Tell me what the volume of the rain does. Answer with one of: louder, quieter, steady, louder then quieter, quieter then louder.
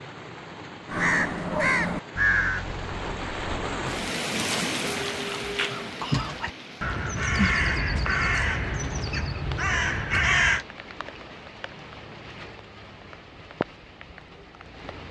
louder then quieter.